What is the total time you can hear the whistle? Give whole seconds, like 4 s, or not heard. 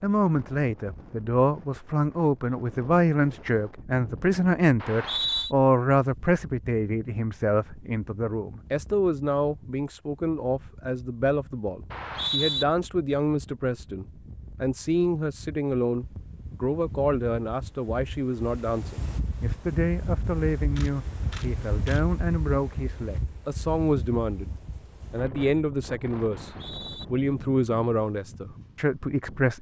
2 s.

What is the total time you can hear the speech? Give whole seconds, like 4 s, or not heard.
29 s.